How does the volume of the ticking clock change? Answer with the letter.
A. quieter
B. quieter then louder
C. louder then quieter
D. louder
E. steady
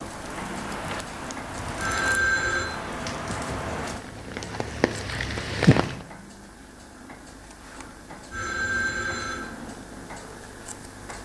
C.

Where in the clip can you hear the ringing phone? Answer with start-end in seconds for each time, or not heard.
1.8-2.6, 8.3-9.4.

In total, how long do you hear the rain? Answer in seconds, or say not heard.
6 s.